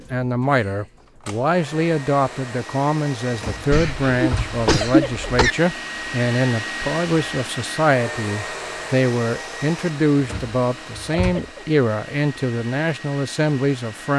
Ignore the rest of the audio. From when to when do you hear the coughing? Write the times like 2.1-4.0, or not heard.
3.7-5.5.